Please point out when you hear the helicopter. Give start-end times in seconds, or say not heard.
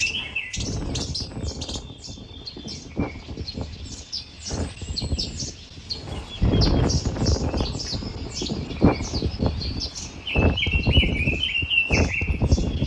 not heard.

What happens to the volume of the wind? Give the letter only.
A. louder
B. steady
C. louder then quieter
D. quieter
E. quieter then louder
A.